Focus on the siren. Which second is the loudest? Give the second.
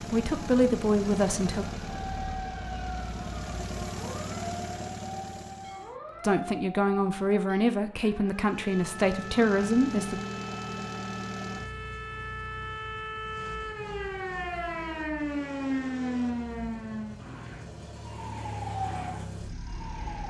16 s.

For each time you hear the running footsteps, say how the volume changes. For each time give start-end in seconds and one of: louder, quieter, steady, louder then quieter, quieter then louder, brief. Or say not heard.
not heard.